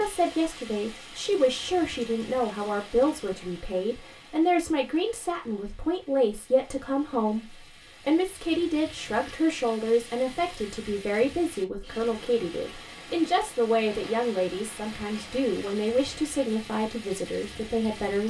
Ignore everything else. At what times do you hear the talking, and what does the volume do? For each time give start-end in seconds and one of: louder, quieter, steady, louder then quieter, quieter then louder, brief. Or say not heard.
0.0-18.2 steady.